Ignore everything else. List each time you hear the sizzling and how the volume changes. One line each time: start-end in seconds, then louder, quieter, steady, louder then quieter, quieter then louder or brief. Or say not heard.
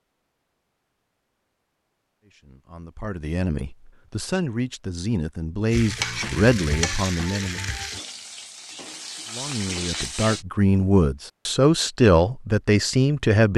5.7-10.4 quieter then louder.